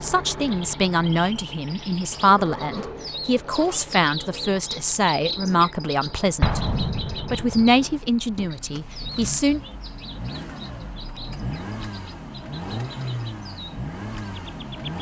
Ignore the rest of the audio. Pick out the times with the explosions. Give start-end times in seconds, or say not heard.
6.4-7.6.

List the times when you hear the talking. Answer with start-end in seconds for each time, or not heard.
0.0-6.6, 7.2-9.6.